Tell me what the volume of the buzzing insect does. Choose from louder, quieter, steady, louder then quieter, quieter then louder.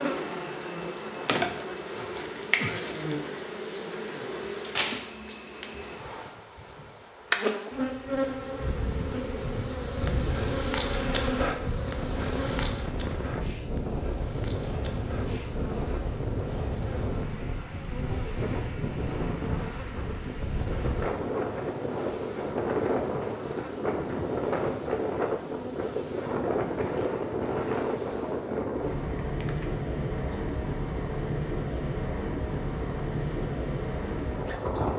quieter.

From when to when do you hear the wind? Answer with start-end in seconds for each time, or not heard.
8.6-34.9.